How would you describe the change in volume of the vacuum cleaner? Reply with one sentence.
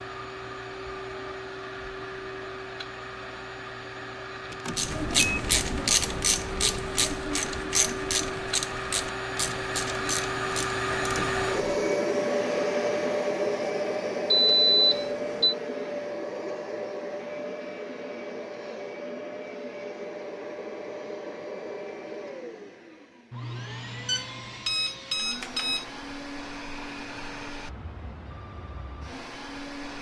The loudness of the vacuum cleaner goes up, then down.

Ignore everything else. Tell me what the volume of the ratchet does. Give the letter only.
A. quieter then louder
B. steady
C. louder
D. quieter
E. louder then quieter
D.